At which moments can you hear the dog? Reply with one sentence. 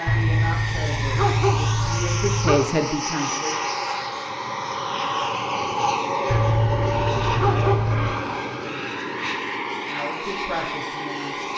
You can hear the dog from 0.1 to 2.6 s and from 6.2 to 8.2 s.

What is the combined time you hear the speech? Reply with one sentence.
The speech can be heard for 5 seconds in total.